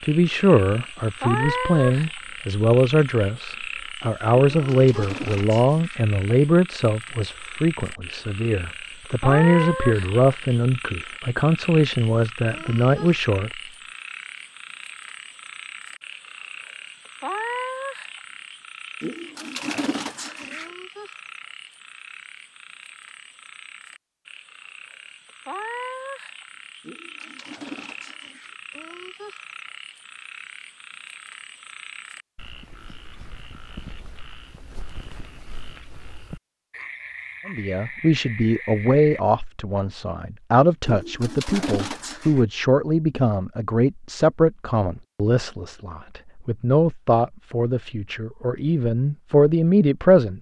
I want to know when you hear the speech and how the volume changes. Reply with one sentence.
You can hear the speech from 0.0 to 13.5 s, at a steady volume; and from 37.5 to 50.3 s, at a steady volume.